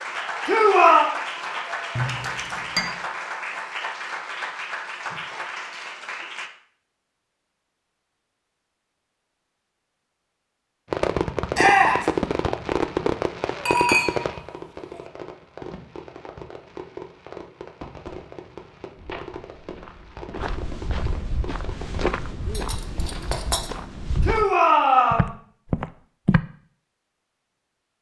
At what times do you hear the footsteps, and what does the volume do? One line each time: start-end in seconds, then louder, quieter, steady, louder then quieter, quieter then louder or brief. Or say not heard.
18.9-24.4 louder then quieter
25.1-26.4 brief.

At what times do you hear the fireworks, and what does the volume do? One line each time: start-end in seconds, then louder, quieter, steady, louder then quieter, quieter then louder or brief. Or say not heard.
10.9-22.1 quieter.